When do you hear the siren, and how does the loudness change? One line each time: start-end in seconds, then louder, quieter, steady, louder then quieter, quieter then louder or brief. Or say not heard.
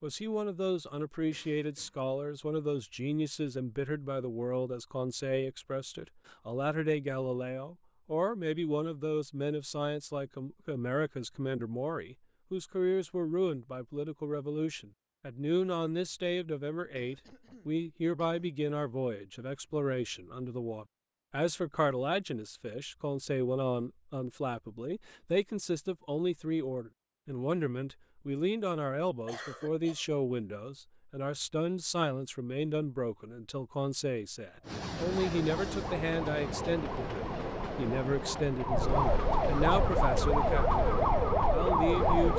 34.6-42.3 louder.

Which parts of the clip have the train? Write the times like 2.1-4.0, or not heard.
34.6-42.3.